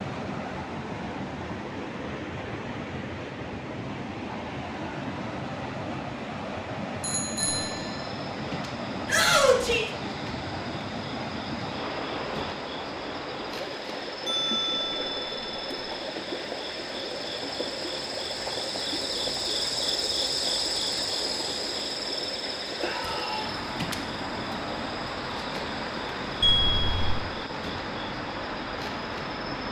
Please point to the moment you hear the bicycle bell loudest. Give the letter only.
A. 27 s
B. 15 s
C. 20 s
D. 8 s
A.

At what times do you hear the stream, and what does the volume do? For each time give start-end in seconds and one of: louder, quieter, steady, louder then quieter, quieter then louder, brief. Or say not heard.
0.0-29.6 steady.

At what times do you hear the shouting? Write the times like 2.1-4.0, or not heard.
9.1-9.8, 22.8-23.5.